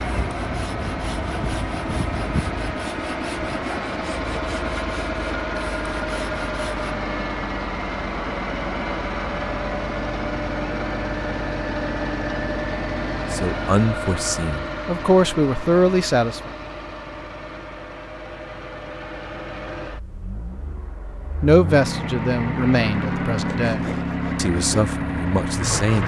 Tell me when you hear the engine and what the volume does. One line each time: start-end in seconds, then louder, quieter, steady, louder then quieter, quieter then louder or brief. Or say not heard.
0.0-26.0 quieter then louder.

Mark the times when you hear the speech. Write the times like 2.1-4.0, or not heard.
13.3-16.5, 21.4-26.0.